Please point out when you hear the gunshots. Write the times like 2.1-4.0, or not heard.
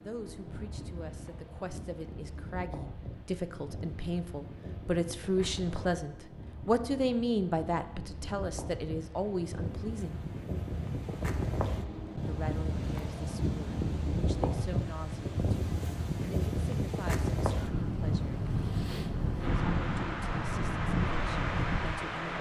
not heard.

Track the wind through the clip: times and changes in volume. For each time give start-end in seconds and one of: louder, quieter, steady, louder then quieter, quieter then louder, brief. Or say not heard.
0.0-22.3 louder.